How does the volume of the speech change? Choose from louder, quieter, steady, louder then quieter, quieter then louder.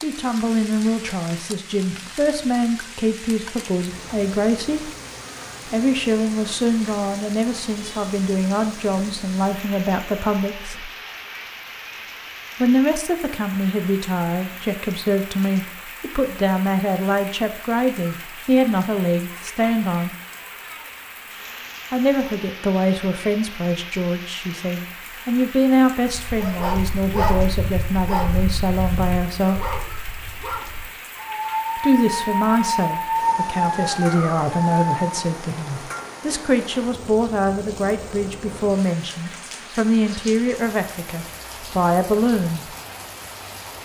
steady.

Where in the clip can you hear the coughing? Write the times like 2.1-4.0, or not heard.
not heard.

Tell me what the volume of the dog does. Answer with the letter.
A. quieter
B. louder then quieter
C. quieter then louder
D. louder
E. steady
C.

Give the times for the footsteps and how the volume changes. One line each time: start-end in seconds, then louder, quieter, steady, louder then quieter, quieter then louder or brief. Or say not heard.
not heard.